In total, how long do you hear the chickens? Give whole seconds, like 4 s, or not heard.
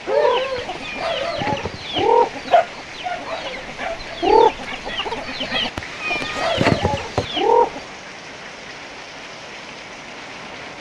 8 s.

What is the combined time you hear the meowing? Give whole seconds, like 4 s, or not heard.
3 s.